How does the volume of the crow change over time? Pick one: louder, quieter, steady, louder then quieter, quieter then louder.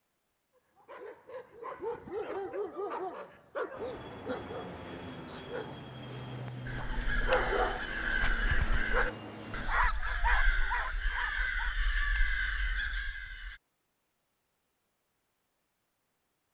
steady.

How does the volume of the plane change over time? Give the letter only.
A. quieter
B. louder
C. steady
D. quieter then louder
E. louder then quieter
C.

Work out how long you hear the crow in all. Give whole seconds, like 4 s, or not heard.
7 s.